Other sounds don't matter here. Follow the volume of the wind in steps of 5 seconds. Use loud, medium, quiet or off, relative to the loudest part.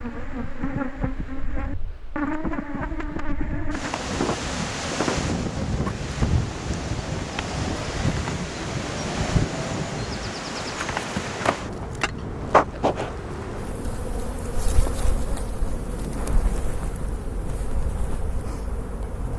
medium, loud, medium, medium.